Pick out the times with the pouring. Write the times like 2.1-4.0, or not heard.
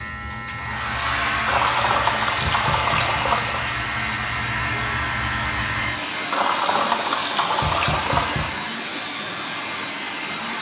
1.4-3.6, 6.3-8.6.